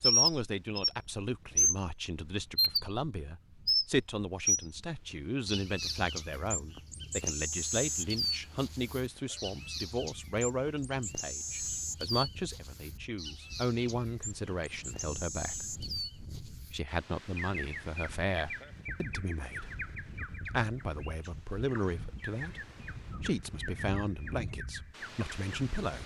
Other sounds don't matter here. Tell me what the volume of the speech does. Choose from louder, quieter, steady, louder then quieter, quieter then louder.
steady.